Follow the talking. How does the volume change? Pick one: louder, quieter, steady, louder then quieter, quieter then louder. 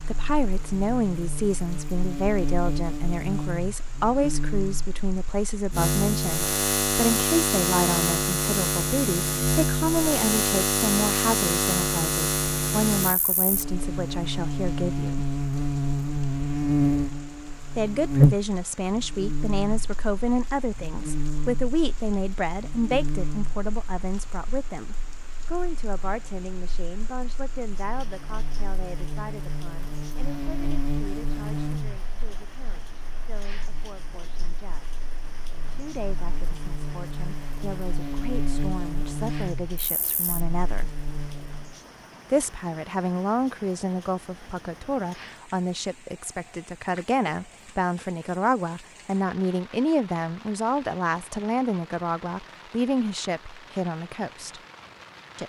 quieter then louder.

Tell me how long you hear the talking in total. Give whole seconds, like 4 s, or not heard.
50 s.